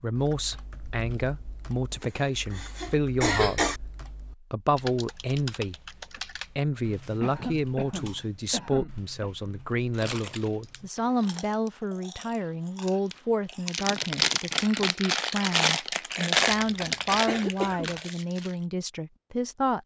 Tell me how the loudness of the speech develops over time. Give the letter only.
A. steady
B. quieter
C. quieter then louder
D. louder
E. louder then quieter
A.